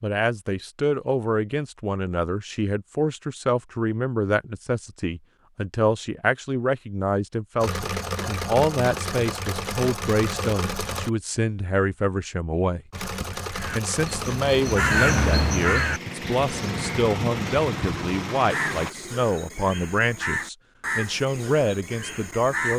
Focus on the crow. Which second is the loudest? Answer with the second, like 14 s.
15 s.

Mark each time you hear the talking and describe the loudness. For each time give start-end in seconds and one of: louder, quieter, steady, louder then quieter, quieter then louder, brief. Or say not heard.
0.0-22.7 steady.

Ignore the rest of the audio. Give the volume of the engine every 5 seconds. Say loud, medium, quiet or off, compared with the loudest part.
off, loud, loud, loud, off.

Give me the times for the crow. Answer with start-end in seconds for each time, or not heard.
13.5-22.7.